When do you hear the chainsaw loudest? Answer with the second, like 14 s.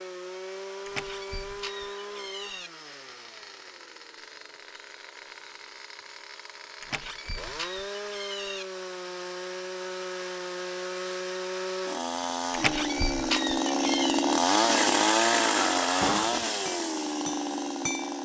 15 s.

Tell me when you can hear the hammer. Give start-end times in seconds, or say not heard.
16.0-18.2.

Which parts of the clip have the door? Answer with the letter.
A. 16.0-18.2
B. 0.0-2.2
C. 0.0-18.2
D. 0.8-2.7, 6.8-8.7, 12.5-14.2
D.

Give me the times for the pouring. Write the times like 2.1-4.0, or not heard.
not heard.